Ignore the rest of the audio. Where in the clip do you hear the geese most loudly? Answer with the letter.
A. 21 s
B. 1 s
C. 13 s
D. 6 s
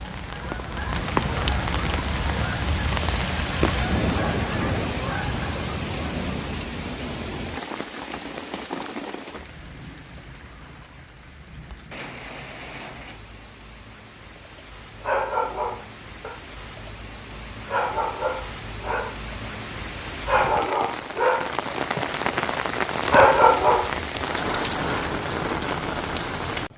B.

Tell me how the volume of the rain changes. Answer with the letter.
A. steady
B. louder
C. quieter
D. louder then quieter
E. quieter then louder
E.